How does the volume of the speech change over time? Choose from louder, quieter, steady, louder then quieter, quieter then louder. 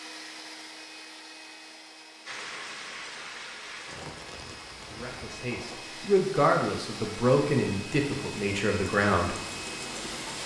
louder then quieter.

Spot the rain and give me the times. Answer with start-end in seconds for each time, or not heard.
2.2-10.4.